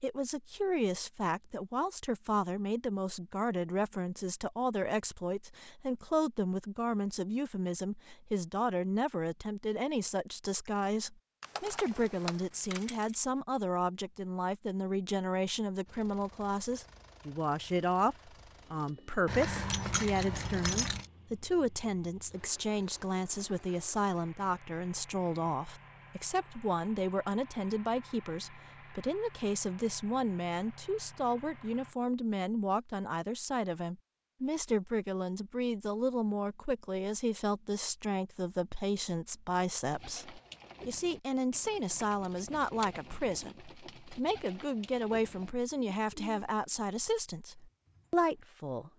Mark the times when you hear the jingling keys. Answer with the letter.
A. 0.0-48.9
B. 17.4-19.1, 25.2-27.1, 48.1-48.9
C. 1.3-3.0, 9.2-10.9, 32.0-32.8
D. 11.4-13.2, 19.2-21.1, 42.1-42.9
D.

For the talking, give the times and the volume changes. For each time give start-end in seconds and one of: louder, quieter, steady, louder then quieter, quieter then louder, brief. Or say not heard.
0.0-48.9 steady.